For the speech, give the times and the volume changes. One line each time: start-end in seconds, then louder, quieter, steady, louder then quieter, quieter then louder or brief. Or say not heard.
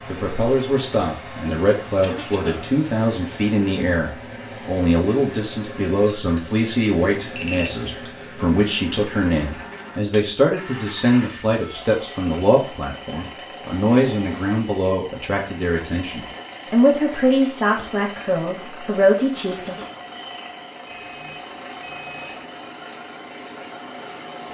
0.1-19.8 steady.